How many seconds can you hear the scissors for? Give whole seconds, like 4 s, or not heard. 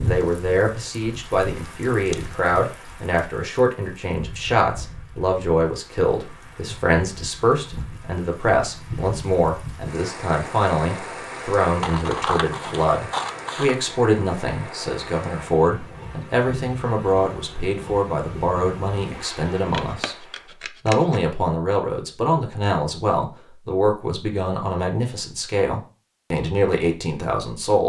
4 s.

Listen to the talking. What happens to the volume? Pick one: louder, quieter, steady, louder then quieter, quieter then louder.
steady.